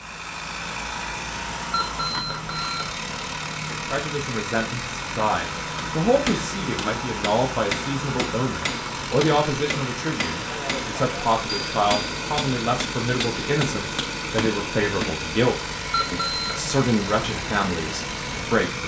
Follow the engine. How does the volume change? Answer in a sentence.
The loudness of the engine stays about the same.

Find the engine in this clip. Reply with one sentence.
You can hear the engine from 0.0 to 18.8 s.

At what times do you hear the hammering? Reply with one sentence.
The hammering can be heard from 5.7 to 15.2 s.